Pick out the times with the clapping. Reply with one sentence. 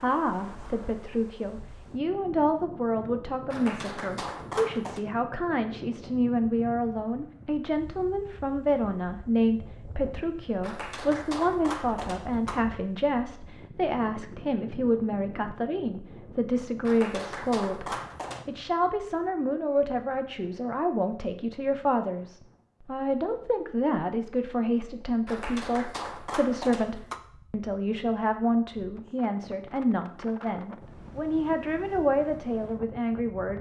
The clapping can be heard from 3.5 to 5.0 s, from 10.6 to 12.7 s, from 16.9 to 18.4 s and from 25.2 to 27.2 s.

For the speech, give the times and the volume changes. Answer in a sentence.
You can hear the speech from 0.0 to 33.5 s, at a steady volume.